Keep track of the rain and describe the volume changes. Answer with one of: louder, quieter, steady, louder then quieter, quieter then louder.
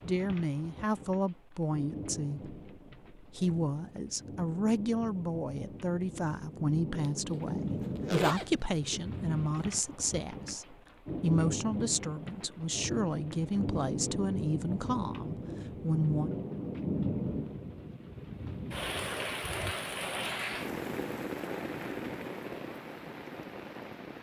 louder.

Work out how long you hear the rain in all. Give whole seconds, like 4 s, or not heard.
24 s.